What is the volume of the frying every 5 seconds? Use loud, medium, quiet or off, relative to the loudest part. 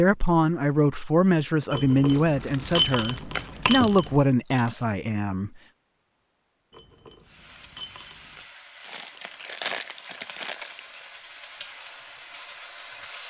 off, medium, loud.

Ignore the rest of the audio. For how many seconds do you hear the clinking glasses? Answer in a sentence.
The clinking glasses can be heard for 4 seconds in total.